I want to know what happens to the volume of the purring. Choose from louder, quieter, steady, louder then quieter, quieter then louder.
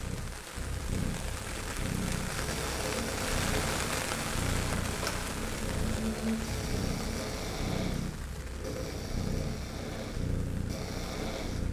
steady.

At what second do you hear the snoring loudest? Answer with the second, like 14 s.
6 s.